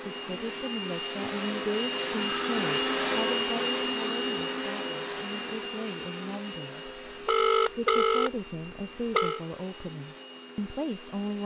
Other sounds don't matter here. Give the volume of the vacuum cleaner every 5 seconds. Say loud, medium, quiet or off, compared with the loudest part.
loud, medium, quiet.